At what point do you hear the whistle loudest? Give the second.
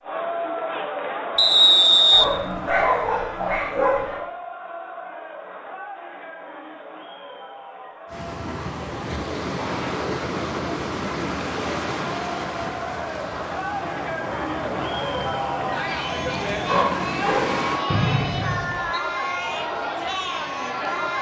2 s.